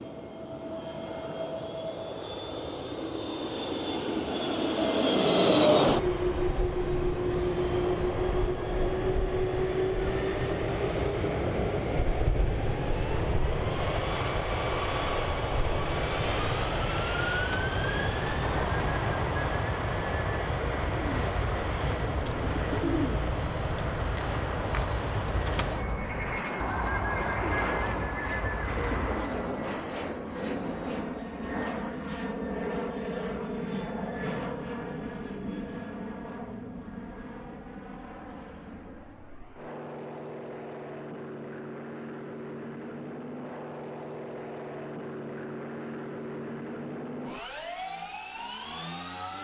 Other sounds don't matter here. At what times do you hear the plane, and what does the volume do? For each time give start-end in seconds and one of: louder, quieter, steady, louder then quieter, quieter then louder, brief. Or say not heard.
0.0-49.3 quieter.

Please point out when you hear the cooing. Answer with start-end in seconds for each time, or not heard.
17.1-29.6.